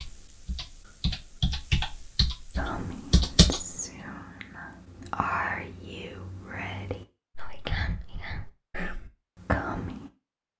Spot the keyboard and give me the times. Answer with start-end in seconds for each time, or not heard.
0.0-3.6.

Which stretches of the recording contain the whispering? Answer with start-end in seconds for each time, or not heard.
2.5-10.1.